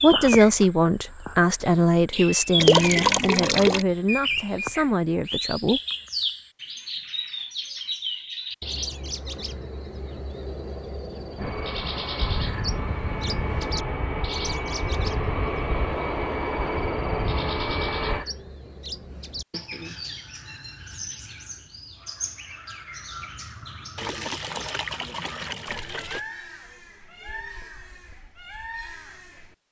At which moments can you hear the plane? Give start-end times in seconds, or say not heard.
11.3-18.2.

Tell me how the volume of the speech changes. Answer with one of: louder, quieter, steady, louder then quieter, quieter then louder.
quieter.